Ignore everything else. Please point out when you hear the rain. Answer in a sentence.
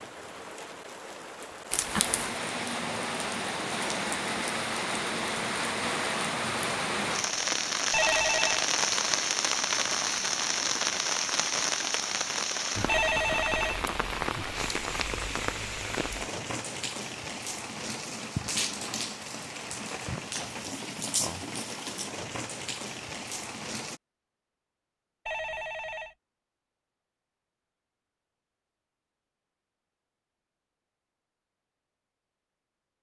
You can hear the rain from 0.0 to 24.0 s.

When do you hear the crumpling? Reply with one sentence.
You can hear the crumpling from 1.7 to 2.4 s.